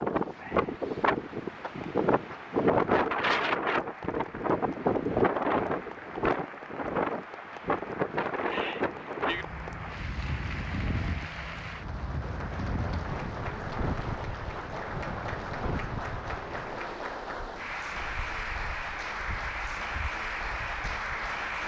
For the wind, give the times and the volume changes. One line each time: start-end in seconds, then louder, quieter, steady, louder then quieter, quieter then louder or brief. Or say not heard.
0.0-21.6 quieter.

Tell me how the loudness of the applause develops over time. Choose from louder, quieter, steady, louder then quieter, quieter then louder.
louder.